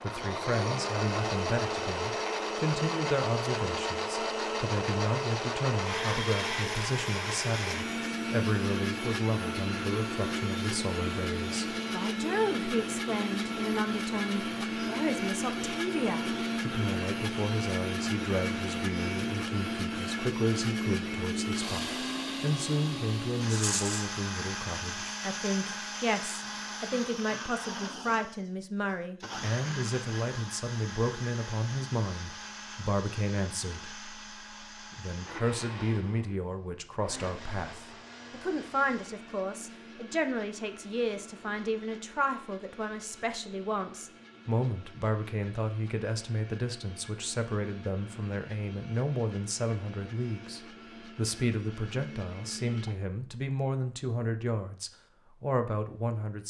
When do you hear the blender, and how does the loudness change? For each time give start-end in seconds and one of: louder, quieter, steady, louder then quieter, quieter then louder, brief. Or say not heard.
0.0-53.0 quieter.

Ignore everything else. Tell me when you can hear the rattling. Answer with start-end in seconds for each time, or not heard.
23.4-24.1.